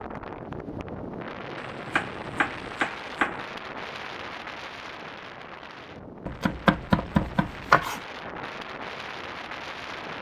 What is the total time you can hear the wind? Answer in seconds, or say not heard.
10 s.